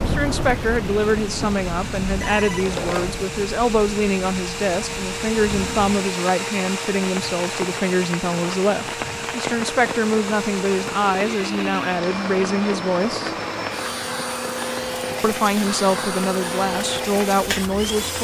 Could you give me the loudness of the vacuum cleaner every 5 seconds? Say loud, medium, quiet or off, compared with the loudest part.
medium, loud, loud, loud.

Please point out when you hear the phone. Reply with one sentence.
The phone can be heard from 2.1 to 3.2 s.